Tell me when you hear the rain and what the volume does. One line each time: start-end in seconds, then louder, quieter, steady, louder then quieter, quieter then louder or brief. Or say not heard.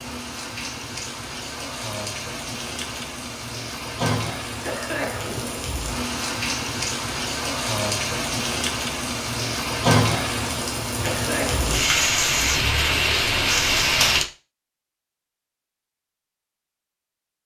0.0-14.2 louder.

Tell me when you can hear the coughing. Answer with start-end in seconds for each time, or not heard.
4.6-5.5, 11.0-11.9.